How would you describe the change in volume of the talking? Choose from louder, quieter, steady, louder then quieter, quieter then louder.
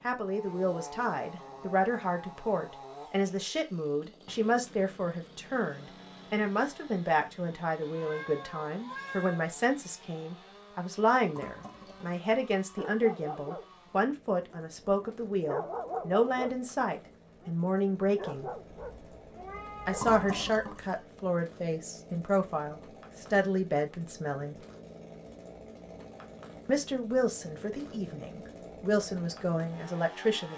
steady.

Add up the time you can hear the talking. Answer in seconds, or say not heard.
27 s.